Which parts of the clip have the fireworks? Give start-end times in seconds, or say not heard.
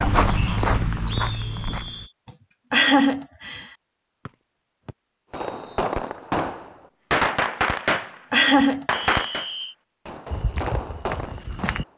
5.3-11.9.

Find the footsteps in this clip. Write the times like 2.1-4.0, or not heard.
0.0-2.1, 10.3-11.8.